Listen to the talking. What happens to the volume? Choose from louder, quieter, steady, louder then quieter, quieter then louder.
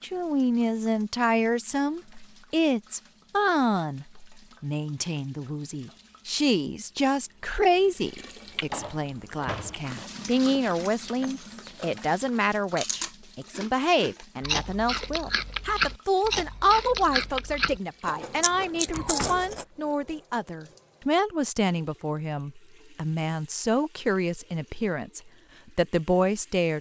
steady.